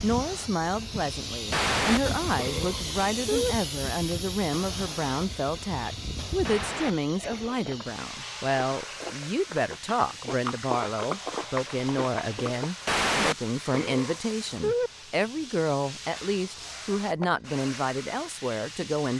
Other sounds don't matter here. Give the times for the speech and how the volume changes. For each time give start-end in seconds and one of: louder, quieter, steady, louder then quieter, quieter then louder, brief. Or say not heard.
0.0-19.1 steady.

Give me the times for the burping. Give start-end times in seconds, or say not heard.
1.5-3.5, 6.4-7.5, 12.8-14.9.